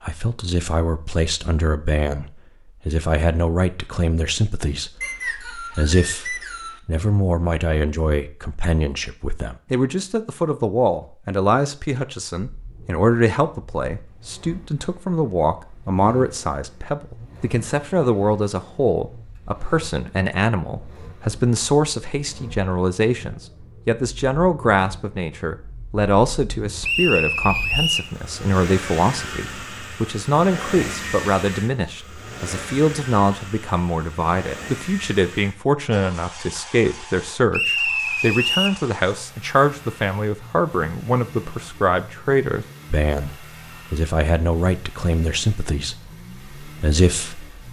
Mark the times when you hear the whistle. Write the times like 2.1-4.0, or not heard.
5.0-6.8, 26.8-28.1, 37.5-38.8.